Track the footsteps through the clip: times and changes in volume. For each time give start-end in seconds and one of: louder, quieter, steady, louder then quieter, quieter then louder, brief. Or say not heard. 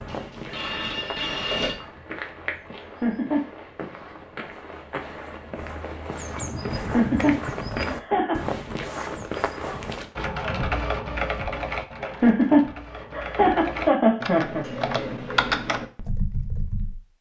0.0-10.1 louder.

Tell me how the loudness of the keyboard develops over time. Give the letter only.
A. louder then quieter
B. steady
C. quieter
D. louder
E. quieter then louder
E.